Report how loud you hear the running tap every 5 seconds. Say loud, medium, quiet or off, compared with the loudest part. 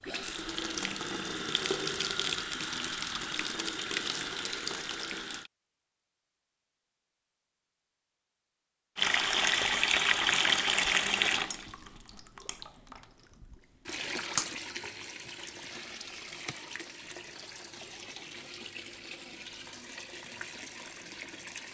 medium, loud, loud, quiet, quiet.